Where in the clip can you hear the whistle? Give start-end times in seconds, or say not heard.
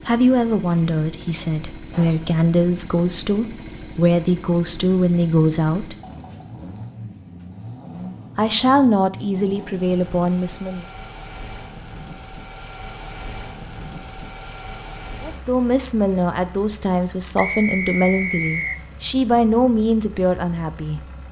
17.4-18.8.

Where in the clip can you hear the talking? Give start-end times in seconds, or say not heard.
0.1-6.0, 8.3-10.8, 15.2-21.0.